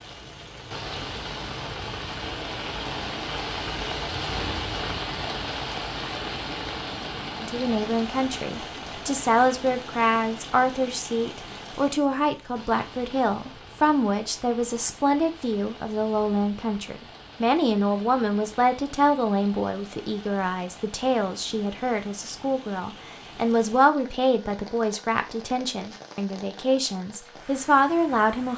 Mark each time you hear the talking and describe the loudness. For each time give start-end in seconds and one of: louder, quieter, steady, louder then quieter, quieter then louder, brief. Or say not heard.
7.4-28.5 steady.